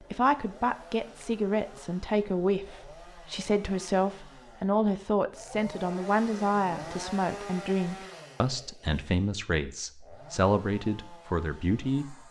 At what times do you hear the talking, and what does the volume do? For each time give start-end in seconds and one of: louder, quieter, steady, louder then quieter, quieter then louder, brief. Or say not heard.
0.1-12.2 steady.